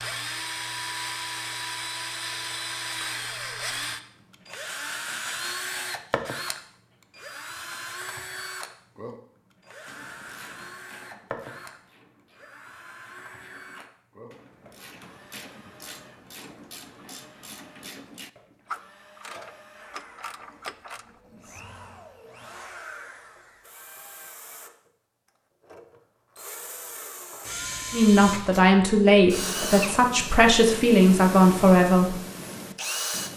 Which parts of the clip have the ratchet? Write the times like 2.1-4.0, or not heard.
9.8-21.6.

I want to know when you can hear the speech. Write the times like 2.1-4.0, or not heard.
27.9-32.1.